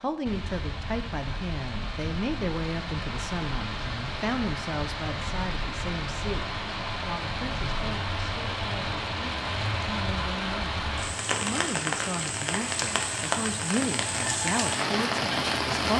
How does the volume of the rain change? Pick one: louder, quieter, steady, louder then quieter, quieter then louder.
louder.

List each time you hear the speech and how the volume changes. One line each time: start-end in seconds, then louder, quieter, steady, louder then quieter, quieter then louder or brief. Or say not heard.
0.0-15.9 quieter then louder.